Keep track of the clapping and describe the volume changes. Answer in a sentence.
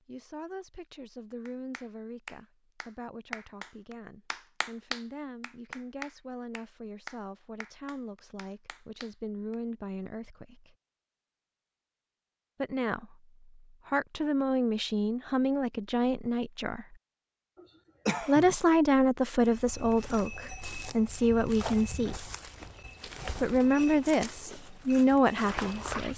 The volume of the clapping goes up, then down.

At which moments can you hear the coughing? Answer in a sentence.
The coughing can be heard from 17.6 to 18.6 s.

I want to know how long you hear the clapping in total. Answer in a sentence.
You can hear the clapping for 8 seconds altogether.